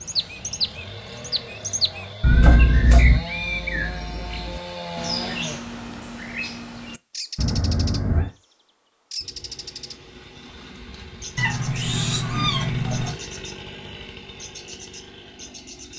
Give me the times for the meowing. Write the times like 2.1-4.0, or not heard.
2.2-3.2, 7.3-8.3, 11.3-13.2.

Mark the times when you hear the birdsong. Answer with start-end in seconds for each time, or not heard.
0.0-8.1, 9.1-10.0, 11.1-11.9, 12.8-13.7, 14.3-15.9.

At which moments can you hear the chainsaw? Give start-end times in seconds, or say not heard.
0.0-5.6, 9.2-15.9.